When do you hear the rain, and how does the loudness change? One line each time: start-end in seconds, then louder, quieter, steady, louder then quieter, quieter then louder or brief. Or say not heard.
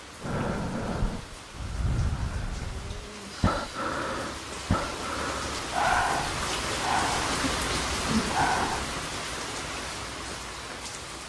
0.0-11.2 louder then quieter.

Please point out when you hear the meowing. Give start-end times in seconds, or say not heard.
not heard.